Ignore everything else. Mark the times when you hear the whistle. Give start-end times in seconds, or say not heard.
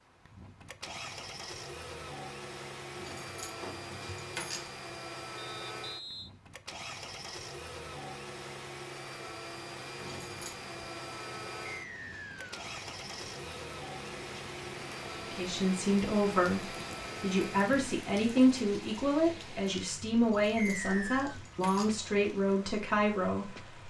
5.3-6.3, 11.7-12.6, 20.6-21.4.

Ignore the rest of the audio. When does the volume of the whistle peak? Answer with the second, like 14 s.
21 s.